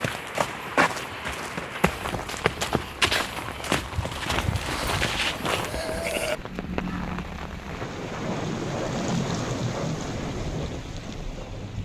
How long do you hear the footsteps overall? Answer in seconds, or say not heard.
6 s.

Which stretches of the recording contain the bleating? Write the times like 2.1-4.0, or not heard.
4.3-6.3.